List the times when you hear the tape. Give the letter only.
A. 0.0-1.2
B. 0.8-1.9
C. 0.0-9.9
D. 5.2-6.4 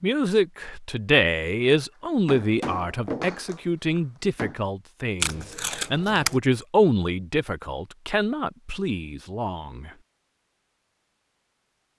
D.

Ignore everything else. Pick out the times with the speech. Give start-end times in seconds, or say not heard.
0.0-9.9.